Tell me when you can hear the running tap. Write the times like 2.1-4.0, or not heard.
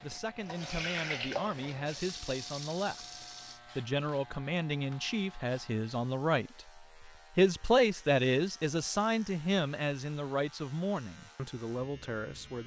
0.0-3.6.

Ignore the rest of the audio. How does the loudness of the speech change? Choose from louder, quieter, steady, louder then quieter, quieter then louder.
louder then quieter.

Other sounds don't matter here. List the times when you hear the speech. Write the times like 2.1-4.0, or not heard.
0.0-12.6.